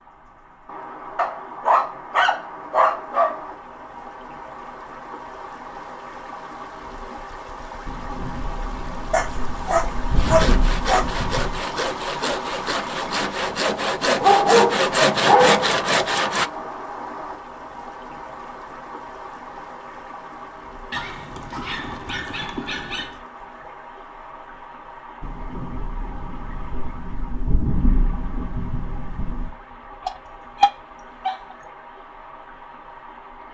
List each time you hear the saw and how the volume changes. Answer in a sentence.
The saw can be heard from 10.1 to 16.5 s, getting louder.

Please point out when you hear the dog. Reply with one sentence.
You can hear the dog from 1.1 to 3.4 s, from 9.1 to 11.1 s, from 14.2 to 15.7 s, from 20.9 to 23.2 s and from 30.1 to 31.4 s.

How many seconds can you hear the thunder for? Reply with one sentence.
You can hear the thunder for 8 seconds altogether.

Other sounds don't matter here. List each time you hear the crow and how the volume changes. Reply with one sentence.
You can't hear the crow here.